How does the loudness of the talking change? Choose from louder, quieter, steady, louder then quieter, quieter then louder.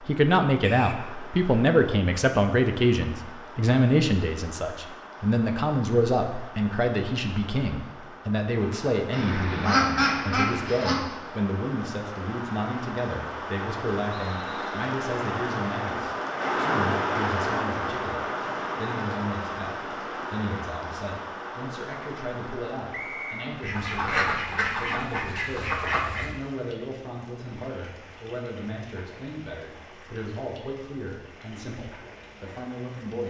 quieter.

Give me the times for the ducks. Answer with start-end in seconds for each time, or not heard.
9.1-11.1, 23.6-26.4.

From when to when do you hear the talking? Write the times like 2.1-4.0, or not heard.
0.1-33.2.